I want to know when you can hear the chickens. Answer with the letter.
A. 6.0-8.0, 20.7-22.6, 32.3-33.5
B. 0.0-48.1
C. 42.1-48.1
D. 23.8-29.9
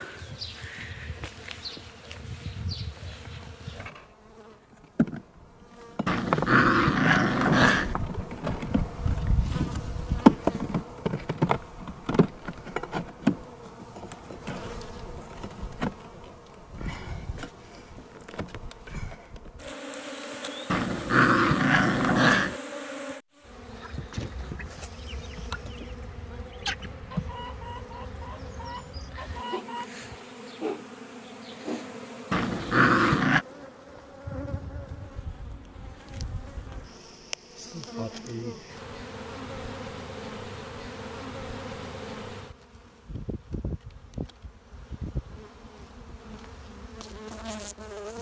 D.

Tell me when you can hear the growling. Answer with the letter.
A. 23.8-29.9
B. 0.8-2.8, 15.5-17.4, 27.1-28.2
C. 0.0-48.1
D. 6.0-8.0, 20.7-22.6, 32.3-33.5
D.